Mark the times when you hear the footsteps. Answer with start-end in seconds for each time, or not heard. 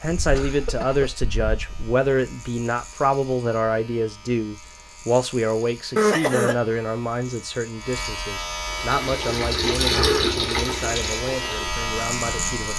not heard.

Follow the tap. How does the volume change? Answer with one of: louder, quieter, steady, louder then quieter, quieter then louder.
louder then quieter.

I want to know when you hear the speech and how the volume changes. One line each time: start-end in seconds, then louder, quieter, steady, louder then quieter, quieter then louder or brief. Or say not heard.
0.0-12.7 quieter.